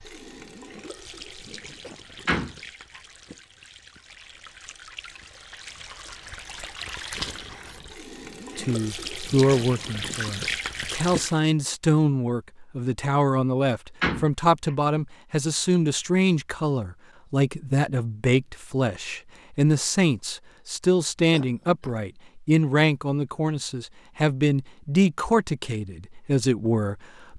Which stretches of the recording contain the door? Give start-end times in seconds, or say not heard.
2.2-3.0, 14.0-14.8.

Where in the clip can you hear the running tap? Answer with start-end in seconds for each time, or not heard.
0.0-11.4.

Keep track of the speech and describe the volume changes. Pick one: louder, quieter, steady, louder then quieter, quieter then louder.
steady.